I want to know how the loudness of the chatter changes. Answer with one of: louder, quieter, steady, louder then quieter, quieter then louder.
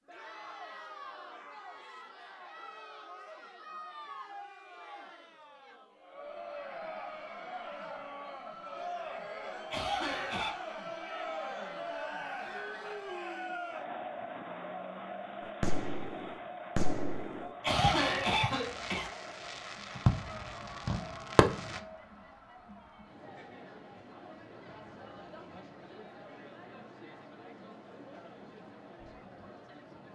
louder then quieter.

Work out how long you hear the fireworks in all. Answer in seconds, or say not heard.
6 s.